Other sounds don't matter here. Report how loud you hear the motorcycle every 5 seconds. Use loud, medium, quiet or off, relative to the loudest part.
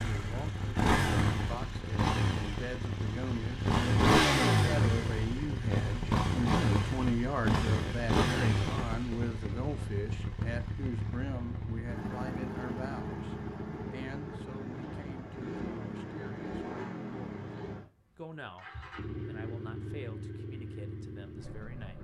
loud, loud, medium, medium, quiet.